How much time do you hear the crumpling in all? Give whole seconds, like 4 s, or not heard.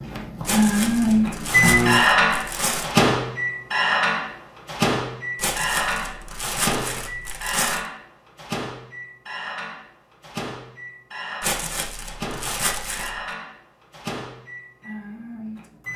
7 s.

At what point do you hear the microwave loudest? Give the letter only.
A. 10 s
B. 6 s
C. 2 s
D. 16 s
C.